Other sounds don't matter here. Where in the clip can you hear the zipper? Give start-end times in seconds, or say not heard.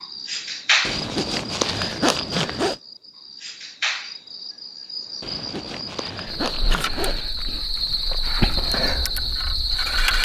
0.8-2.8, 5.2-7.2.